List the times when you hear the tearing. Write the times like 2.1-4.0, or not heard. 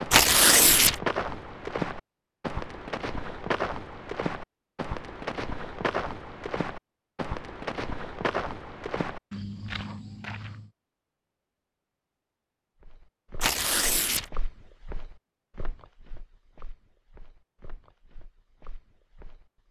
0.1-1.0, 13.4-14.3.